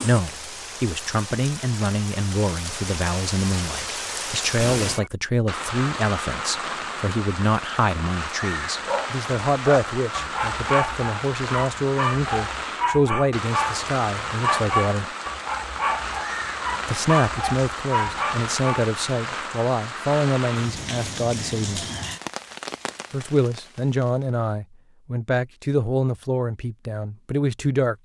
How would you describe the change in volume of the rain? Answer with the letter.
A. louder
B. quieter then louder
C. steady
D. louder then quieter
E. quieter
C.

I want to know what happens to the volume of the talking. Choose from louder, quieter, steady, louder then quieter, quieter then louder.
steady.